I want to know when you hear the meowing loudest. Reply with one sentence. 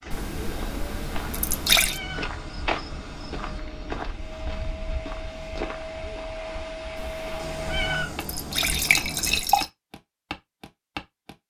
The volume of the meowing peaks at 8 seconds.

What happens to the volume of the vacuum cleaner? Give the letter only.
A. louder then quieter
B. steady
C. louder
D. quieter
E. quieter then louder
C.